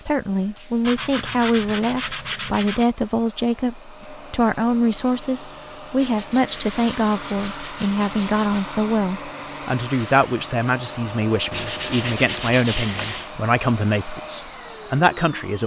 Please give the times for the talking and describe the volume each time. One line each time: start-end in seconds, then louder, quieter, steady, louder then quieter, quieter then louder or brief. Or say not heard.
0.1-15.6 steady.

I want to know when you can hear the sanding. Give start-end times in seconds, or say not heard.
0.8-2.9, 6.0-8.7, 11.5-13.3.